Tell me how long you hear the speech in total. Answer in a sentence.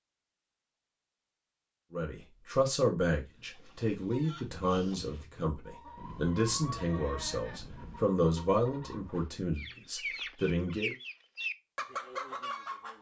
You can hear the speech for 9 seconds altogether.